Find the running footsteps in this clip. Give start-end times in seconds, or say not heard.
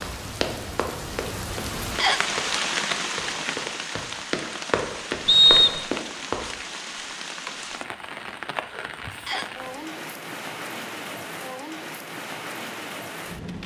0.0-6.5.